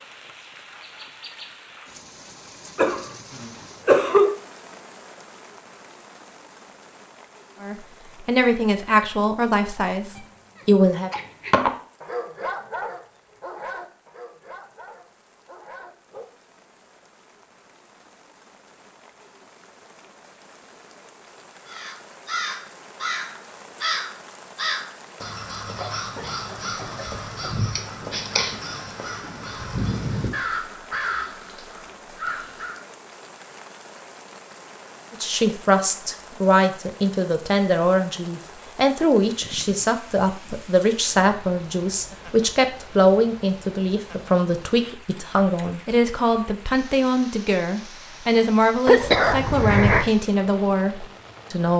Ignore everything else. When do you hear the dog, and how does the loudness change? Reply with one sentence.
The dog can be heard from 9.9 to 16.2 s, getting louder then quieter.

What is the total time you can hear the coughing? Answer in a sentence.
You can hear the coughing for 5 seconds altogether.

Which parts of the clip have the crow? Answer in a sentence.
The crow can be heard from 21.6 to 32.8 s.